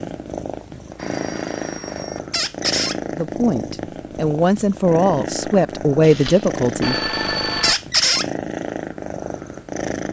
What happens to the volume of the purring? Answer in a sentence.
The volume of the purring stays about the same.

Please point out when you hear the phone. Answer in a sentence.
The phone can be heard from 0.8 to 2.2 s and from 6.0 to 7.8 s.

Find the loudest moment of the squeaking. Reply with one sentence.
The volume of the squeaking peaks at 8 seconds.